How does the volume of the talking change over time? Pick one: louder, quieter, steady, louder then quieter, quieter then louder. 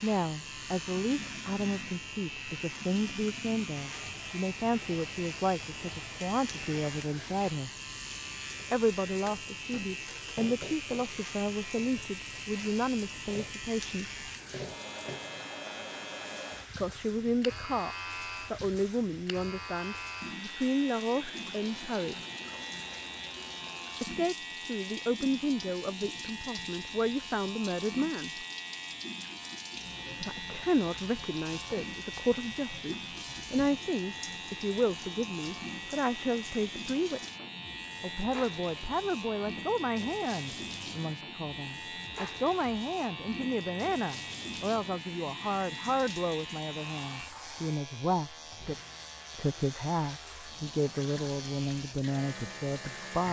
steady.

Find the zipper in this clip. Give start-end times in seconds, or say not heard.
not heard.